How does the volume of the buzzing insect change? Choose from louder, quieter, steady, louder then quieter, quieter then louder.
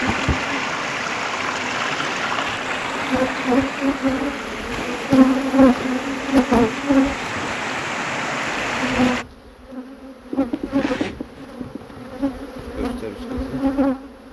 louder then quieter.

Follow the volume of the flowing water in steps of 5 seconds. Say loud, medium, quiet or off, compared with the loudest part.
loud, loud, off.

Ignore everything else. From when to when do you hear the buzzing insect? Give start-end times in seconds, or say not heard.
0.0-14.2.